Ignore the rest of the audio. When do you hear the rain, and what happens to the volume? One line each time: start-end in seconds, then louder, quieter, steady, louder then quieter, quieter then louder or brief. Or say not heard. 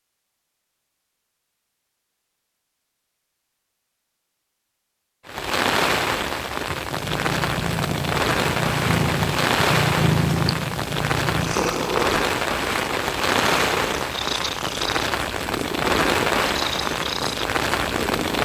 5.2-18.3 steady.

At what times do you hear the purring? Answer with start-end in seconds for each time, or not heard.
6.7-18.3.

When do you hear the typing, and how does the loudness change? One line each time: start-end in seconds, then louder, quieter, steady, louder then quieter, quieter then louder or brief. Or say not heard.
not heard.